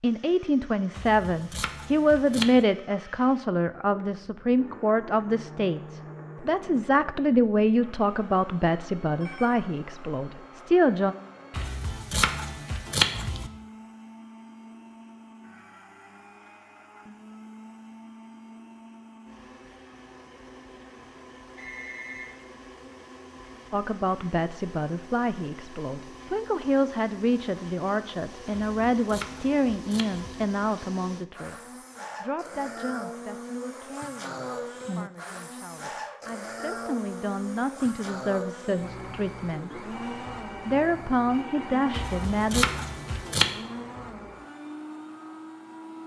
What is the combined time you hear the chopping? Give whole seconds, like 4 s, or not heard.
7 s.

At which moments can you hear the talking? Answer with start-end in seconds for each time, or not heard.
0.0-11.2, 23.7-39.8, 40.6-42.6.